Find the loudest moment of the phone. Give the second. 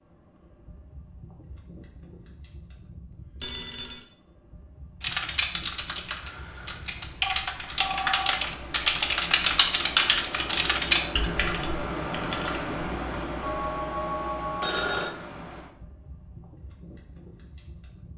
15 s.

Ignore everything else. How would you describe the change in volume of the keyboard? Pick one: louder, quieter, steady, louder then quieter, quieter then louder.
louder then quieter.